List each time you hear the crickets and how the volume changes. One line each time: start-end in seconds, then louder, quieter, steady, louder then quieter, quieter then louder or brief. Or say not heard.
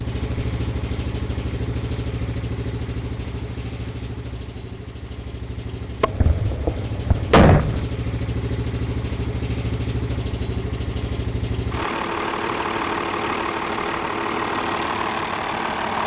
0.0-16.0 quieter.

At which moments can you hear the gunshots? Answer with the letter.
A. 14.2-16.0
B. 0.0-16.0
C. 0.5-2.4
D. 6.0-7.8
D.